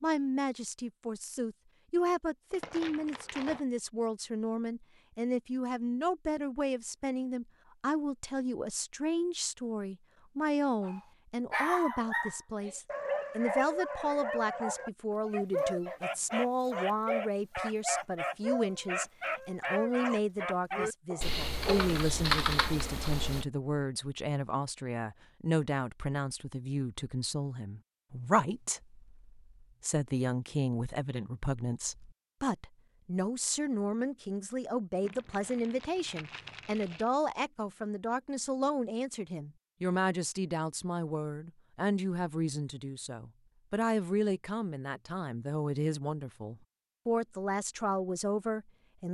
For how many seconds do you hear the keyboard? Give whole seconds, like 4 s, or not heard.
2 s.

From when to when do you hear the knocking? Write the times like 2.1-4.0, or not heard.
not heard.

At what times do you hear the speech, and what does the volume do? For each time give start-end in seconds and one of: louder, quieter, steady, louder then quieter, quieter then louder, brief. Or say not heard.
0.0-49.0 steady.